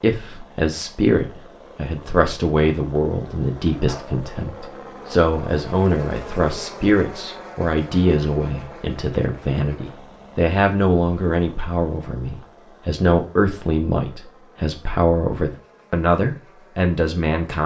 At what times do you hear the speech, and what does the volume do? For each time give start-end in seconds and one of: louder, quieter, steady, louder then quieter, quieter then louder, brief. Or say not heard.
0.0-17.6 steady.